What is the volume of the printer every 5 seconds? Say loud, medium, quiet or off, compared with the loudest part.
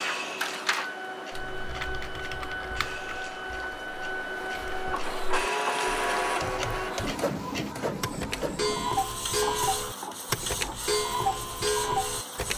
loud, loud, medium.